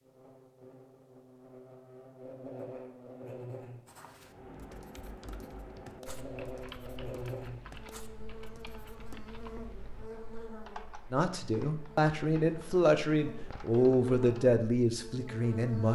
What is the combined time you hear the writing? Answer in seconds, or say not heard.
5 s.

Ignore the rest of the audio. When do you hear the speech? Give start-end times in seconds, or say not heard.
11.1-15.8.